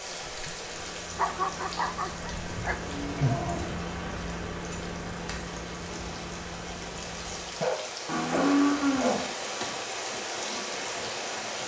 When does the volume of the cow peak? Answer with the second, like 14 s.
9 s.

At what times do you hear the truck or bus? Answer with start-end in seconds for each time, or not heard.
0.0-7.6.